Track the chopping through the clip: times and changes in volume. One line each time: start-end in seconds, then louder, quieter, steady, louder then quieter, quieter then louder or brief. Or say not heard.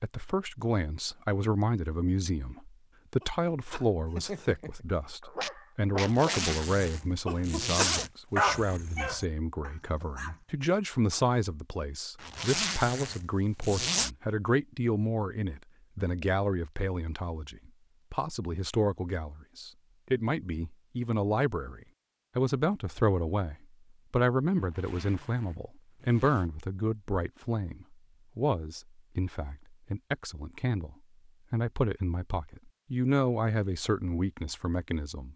not heard.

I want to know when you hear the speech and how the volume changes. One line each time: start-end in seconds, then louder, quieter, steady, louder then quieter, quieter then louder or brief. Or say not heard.
0.0-35.3 steady.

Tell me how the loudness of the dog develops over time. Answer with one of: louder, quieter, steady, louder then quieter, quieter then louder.
louder then quieter.